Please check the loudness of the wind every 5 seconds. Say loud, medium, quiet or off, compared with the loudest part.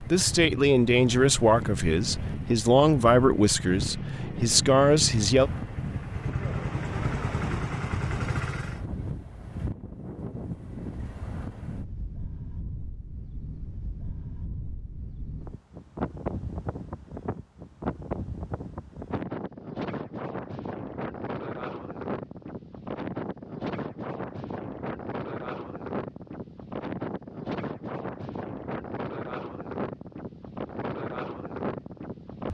loud, loud, medium, loud, loud, loud, loud.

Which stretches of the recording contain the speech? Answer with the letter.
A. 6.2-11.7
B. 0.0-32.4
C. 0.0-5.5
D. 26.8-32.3
C.